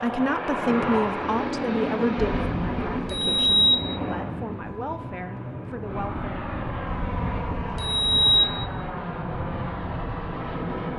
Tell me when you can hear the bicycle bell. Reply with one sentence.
You can hear the bicycle bell from 2.2 to 3.8 s and from 6.8 to 8.4 s.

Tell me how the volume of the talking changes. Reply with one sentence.
The volume of the talking goes down.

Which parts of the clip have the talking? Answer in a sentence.
The talking can be heard from 0.0 to 6.5 s.